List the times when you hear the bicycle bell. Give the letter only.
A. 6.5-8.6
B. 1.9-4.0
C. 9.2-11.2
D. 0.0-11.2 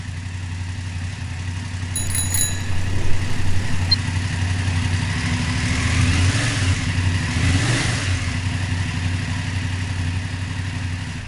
B.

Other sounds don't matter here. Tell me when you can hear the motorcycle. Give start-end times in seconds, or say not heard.
0.0-11.2.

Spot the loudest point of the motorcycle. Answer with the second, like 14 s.
6 s.